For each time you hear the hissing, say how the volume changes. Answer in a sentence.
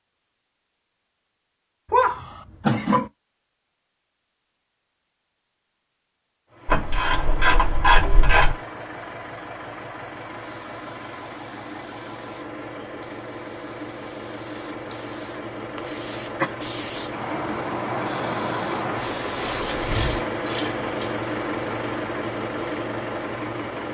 The hissing can be heard from 10.3 to 20.2 s, getting louder.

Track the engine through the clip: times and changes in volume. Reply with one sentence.
You can hear the engine from 6.5 to 23.8 s, getting louder.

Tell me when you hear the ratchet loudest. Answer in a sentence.
The loudest moment of the ratchet is at 8 seconds.